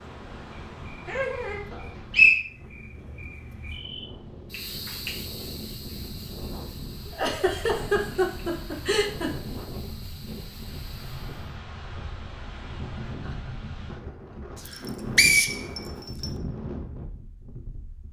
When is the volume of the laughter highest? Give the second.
8 s.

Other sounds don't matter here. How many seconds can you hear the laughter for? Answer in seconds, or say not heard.
4 s.